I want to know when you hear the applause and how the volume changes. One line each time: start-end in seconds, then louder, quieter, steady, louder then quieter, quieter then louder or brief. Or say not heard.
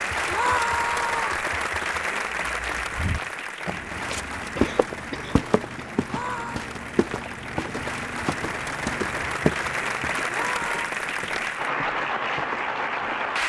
0.0-13.4 quieter then louder.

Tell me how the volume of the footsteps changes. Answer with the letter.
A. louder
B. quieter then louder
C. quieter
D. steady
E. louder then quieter
C.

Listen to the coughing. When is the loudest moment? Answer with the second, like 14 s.
5 s.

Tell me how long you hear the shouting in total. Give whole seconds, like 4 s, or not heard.
2 s.